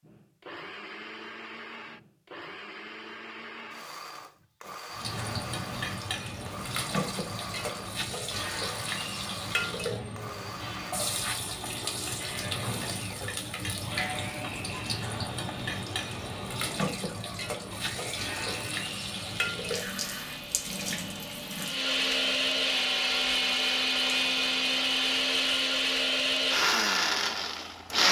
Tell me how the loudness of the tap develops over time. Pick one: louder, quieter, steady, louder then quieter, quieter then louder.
quieter.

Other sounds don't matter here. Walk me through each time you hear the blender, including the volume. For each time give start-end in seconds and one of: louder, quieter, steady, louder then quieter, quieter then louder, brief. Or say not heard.
0.0-28.0 louder.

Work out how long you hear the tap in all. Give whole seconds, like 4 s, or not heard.
20 s.